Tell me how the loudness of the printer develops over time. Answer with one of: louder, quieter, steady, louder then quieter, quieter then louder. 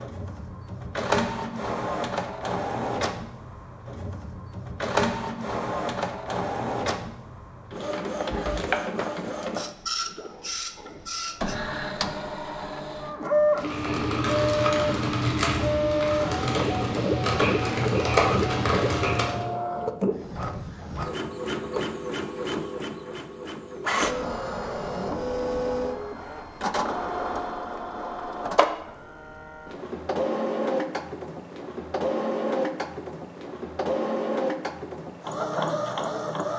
steady.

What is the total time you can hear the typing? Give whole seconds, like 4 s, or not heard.
6 s.